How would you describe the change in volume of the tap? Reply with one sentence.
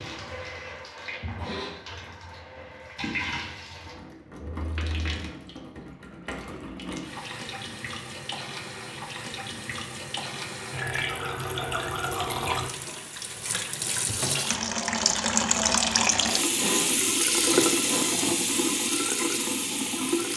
The loudness of the tap goes up.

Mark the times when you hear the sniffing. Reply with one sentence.
You can hear the sniffing from 1.4 to 1.8 s and from 16.6 to 18.1 s.